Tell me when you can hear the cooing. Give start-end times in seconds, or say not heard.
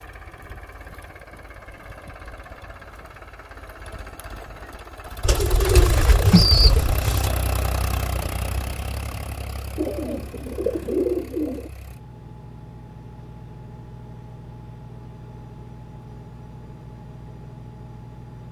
5.2-7.3, 9.8-11.7.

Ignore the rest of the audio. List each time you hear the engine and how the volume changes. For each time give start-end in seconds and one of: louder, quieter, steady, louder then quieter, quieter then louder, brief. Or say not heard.
0.0-18.4 louder then quieter.